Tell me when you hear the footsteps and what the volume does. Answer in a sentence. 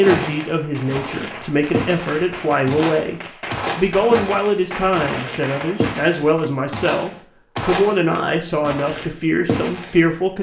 The footsteps can be heard from 0.0 to 10.3 s, at a steady volume.